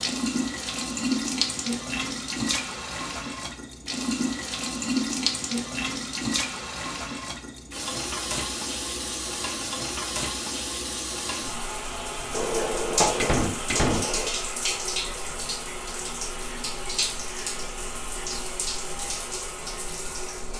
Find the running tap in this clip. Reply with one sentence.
You can hear the running tap from 0.0 to 20.5 s.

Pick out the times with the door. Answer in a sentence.
You can hear the door from 12.3 to 14.3 s.